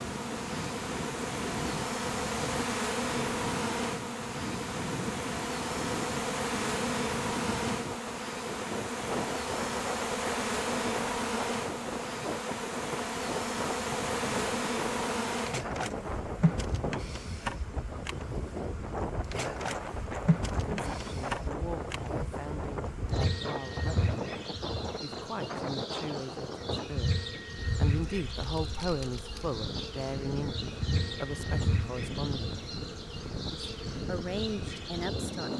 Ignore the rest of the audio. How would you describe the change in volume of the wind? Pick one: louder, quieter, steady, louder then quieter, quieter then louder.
steady.